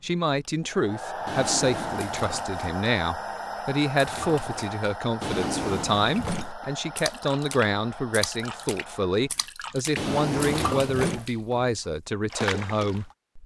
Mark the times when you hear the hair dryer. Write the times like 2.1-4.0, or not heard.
0.0-9.3.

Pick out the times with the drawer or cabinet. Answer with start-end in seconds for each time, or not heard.
1.2-2.2, 5.2-6.5, 9.9-11.3.